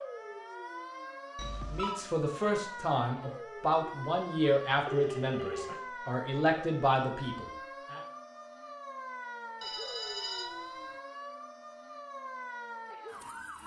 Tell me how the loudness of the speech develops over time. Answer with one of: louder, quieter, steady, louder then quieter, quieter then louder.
steady.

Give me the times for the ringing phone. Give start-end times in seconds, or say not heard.
1.4-2.0, 4.8-5.8, 9.6-11.0.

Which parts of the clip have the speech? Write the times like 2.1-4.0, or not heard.
1.7-8.0.